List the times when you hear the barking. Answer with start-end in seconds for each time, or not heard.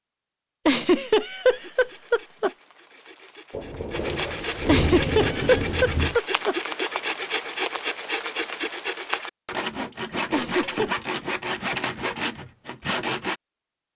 not heard.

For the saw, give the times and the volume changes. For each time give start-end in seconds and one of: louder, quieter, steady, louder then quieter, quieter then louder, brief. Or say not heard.
1.4-13.3 louder.